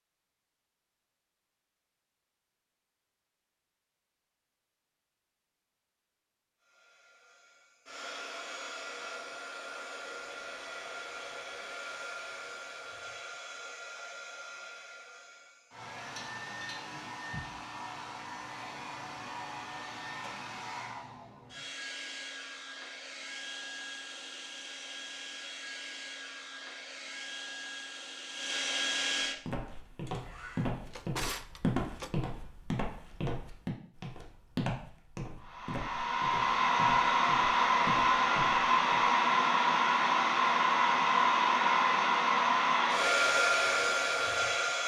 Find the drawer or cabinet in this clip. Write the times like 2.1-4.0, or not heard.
30.6-32.3.